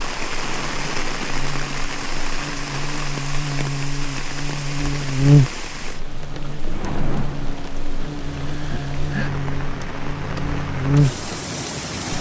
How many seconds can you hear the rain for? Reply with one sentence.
The rain can be heard for 12 seconds in total.